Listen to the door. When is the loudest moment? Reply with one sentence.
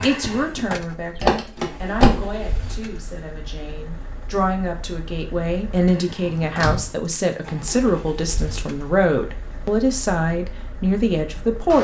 The volume of the door peaks at 2 seconds.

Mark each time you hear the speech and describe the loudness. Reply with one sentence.
You can hear the speech from 0.0 to 11.7 s, getting louder.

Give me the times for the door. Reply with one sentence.
The door can be heard from 1.1 to 2.4 s and from 6.2 to 6.9 s.